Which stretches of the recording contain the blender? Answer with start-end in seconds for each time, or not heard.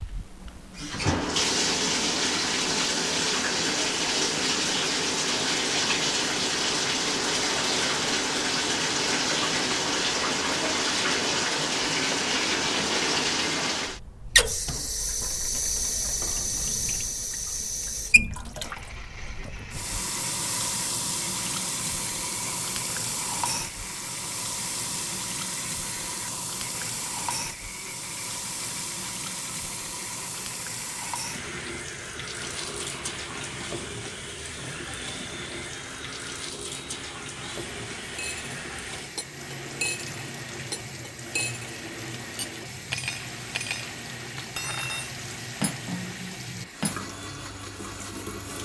18.6-48.6.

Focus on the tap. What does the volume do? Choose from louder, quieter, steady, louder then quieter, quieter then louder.
quieter.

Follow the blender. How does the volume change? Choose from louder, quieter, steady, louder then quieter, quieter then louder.
steady.